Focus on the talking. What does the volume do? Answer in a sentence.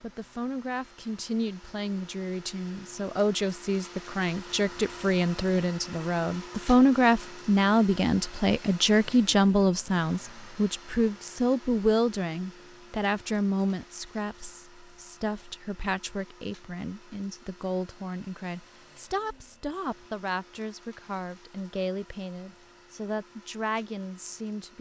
The volume of the talking goes up, then down.